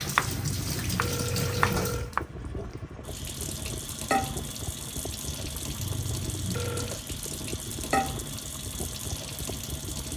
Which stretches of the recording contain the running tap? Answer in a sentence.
You can hear the running tap from 0.0 to 10.1 s.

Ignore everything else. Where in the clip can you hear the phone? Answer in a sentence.
You can hear the phone from 0.4 to 2.1 s and from 5.8 to 7.0 s.